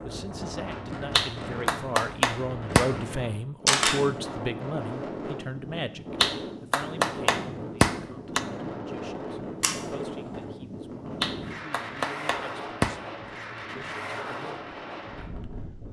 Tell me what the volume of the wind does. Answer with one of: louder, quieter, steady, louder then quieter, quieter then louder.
steady.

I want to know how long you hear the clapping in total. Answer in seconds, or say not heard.
6 s.